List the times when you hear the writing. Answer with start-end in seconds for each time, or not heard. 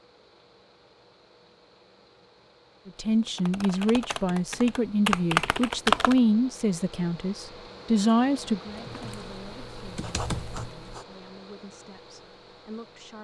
8.9-11.1.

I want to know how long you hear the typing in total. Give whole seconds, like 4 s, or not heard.
5 s.